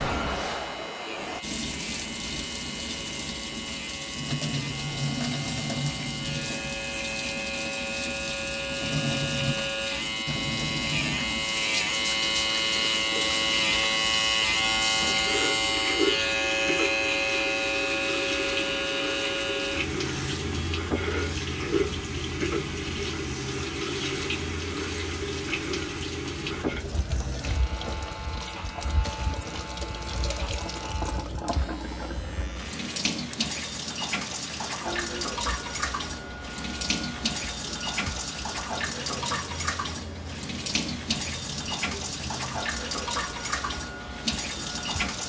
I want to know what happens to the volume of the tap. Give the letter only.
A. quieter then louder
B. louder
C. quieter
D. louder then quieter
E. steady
E.